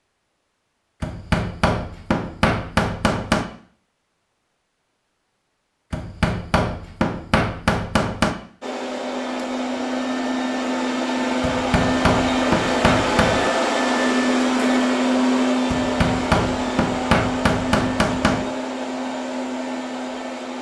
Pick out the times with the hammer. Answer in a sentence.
You can hear the hammer from 1.0 to 3.5 s, from 5.9 to 8.3 s, from 11.4 to 13.5 s and from 15.7 to 18.4 s.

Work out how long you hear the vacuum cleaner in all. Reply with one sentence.
You can hear the vacuum cleaner for 12 seconds altogether.